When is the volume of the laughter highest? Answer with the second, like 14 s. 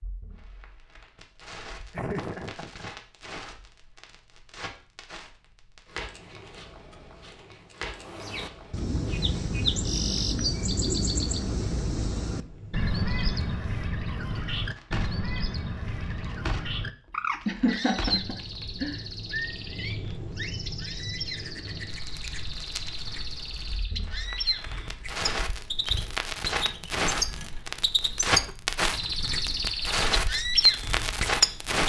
18 s.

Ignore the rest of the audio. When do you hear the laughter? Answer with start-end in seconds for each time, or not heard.
1.9-2.9, 17.4-19.0.